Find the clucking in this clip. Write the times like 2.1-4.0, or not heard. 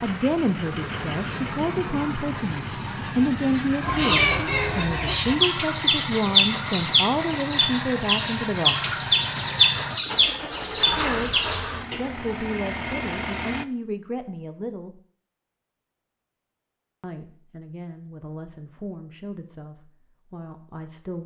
3.8-12.0.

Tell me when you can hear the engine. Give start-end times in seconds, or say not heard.
0.0-13.7.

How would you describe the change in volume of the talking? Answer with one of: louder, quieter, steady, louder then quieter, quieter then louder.
quieter.